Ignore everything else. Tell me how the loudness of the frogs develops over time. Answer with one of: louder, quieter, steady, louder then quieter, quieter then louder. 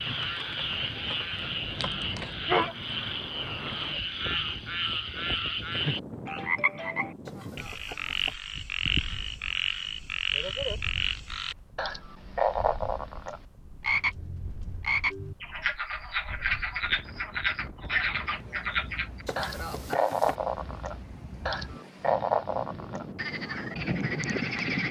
steady.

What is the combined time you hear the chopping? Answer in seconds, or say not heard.
2 s.